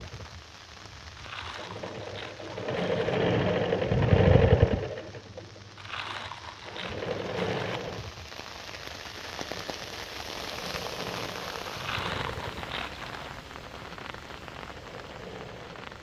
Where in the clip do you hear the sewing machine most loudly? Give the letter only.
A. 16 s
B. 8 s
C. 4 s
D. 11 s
C.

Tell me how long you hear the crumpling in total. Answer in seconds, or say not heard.
6 s.